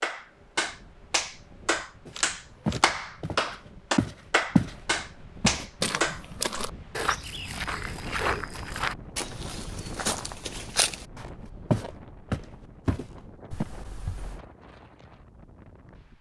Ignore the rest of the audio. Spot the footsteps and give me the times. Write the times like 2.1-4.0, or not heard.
2.0-13.7.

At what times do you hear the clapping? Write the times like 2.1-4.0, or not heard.
0.0-6.6.